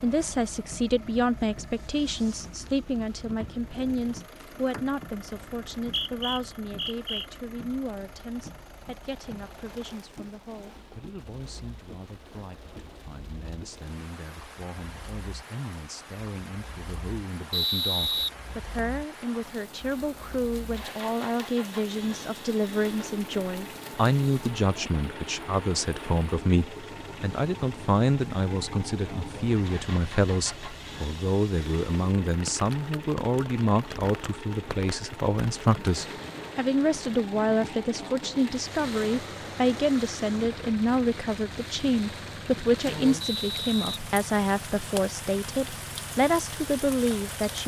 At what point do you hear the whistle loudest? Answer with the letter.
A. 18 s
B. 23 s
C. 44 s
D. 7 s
A.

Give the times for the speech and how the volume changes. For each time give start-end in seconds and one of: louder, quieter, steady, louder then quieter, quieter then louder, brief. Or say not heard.
0.0-47.6 quieter then louder.